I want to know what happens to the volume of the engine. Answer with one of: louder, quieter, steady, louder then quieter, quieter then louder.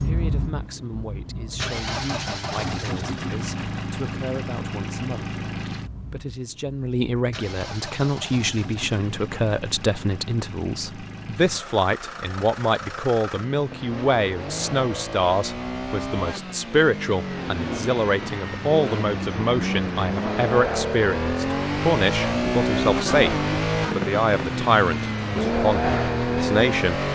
quieter then louder.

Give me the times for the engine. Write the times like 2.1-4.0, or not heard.
0.0-27.1.